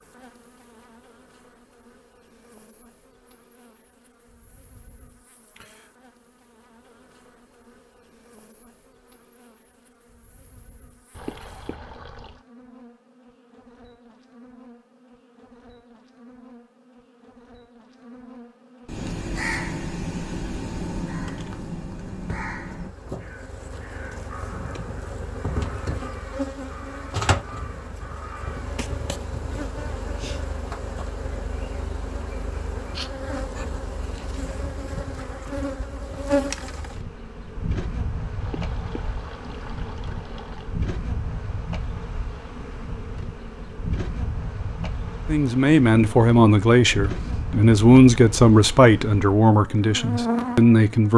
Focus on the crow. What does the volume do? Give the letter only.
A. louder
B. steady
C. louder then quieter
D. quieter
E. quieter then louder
D.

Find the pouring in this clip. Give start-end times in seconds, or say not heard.
11.1-12.4, 38.4-40.8.